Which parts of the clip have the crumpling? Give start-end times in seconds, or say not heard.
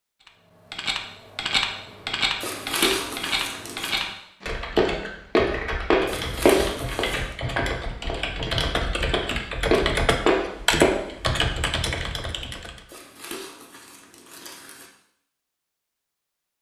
2.4-4.0, 6.0-7.3, 12.8-14.9.